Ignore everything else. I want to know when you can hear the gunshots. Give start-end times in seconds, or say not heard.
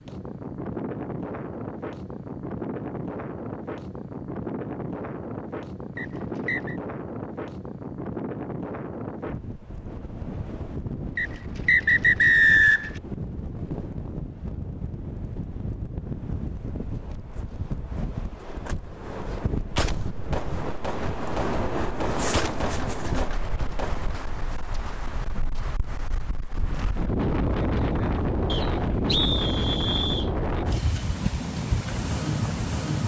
19.7-24.1.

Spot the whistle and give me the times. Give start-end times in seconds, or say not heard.
6.0-6.8, 11.2-12.9, 28.4-30.3.